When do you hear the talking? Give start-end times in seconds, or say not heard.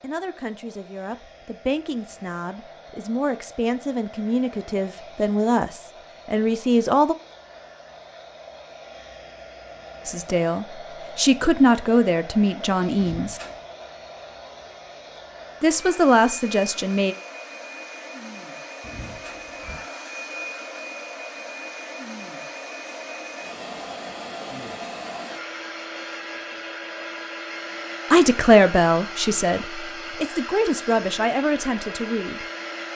0.0-7.2, 10.1-13.4, 15.6-17.1, 28.1-32.5.